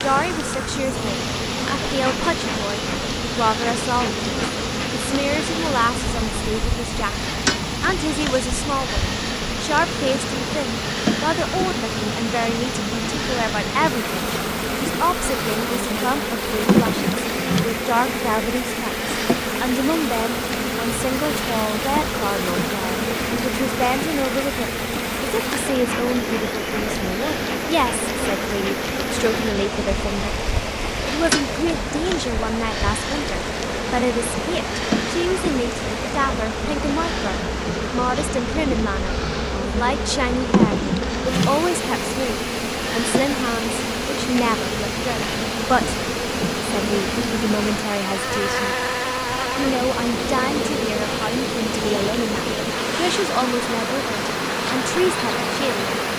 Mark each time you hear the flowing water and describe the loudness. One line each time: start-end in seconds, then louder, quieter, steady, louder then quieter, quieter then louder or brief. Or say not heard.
0.0-56.1 steady.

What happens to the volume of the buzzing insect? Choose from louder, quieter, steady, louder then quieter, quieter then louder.
steady.